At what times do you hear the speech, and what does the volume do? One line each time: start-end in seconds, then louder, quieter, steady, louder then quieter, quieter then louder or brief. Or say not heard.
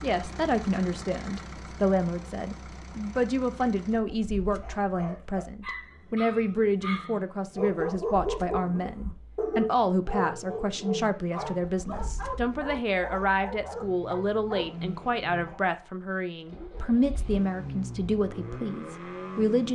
0.0-19.7 steady.